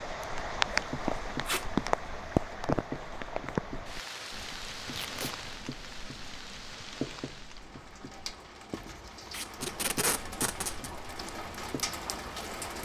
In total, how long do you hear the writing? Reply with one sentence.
You can hear the writing for 11 seconds altogether.